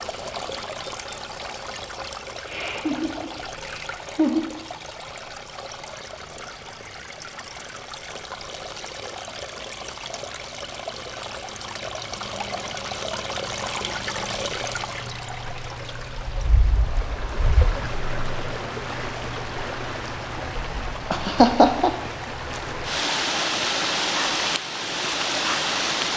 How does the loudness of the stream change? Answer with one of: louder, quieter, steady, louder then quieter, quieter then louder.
louder.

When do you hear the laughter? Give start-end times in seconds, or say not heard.
2.5-4.5, 21.1-21.9.